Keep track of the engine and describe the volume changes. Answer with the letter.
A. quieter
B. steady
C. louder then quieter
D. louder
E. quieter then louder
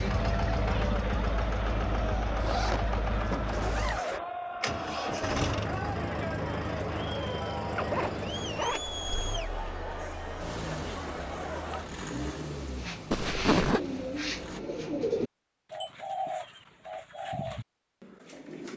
A.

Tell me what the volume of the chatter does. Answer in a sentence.
The loudness of the chatter stays about the same.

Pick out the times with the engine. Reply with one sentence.
The engine can be heard from 0.0 to 14.6 s.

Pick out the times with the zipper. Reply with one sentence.
The zipper can be heard from 2.4 to 4.2 s, from 7.8 to 8.8 s and from 13.1 to 13.8 s.